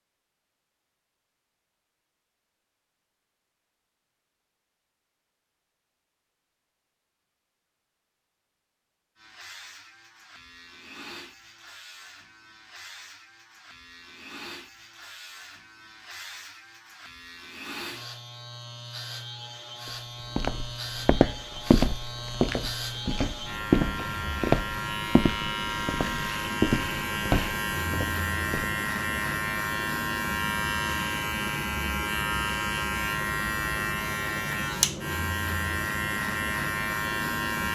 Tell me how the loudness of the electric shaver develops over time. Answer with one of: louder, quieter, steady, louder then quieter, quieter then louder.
louder.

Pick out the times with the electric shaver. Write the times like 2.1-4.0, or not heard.
9.2-37.6.